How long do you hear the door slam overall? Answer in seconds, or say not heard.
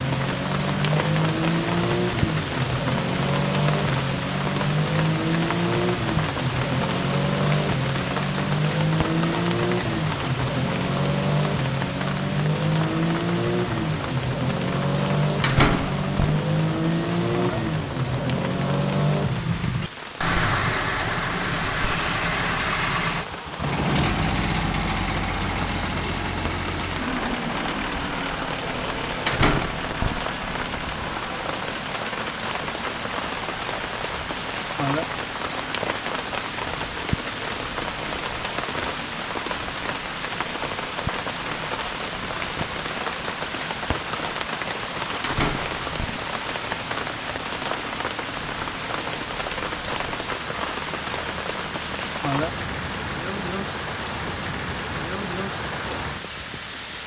3 s.